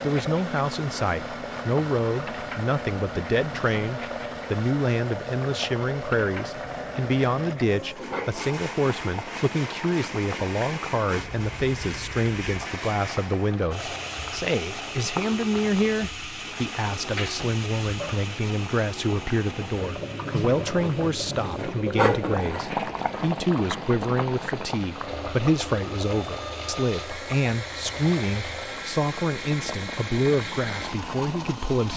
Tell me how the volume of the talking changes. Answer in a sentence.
The loudness of the talking stays about the same.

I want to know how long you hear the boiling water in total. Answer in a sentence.
The boiling water can be heard for 32 seconds in total.